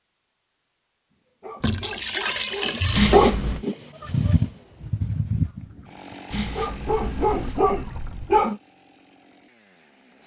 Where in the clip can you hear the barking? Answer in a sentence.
The barking can be heard from 1.4 to 8.6 s.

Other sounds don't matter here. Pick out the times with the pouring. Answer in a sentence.
The pouring can be heard from 1.6 to 3.2 s and from 6.8 to 8.5 s.